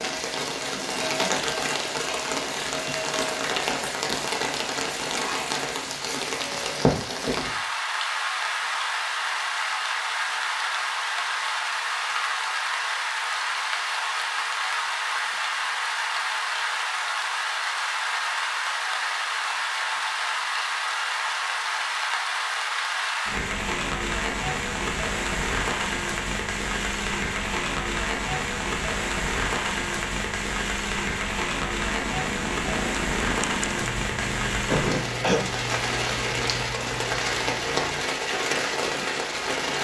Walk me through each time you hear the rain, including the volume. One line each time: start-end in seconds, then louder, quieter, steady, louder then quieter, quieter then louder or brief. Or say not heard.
0.0-39.8 steady.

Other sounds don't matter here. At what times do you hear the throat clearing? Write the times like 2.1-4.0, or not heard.
0.7-1.3, 34.2-35.5.